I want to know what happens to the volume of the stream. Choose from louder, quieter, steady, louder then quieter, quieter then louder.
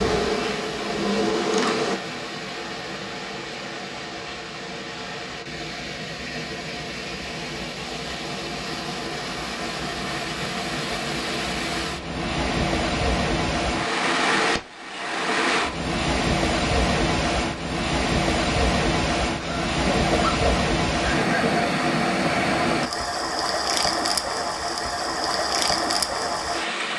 louder.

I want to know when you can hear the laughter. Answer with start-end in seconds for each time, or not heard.
19.4-21.6.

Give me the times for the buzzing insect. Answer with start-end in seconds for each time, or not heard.
0.0-2.0.